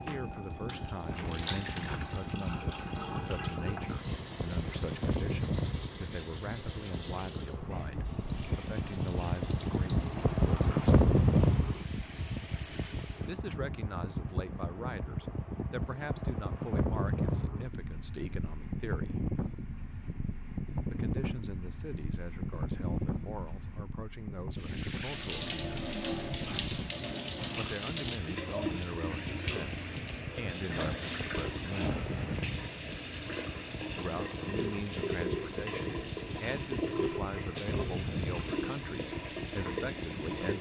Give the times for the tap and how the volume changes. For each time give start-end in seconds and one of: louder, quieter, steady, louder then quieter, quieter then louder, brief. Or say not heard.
0.0-13.4 quieter
24.6-40.5 steady.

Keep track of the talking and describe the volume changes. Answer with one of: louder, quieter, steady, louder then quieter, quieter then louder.
steady.